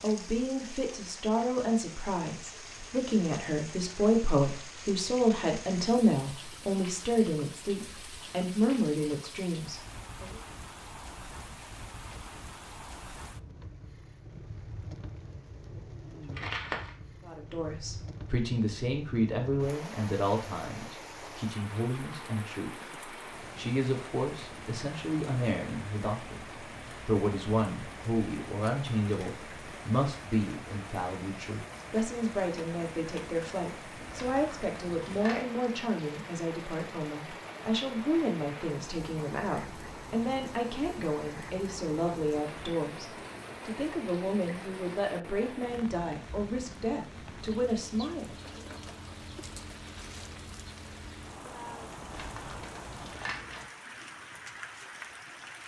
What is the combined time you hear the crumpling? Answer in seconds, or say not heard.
4 s.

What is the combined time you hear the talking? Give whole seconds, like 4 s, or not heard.
41 s.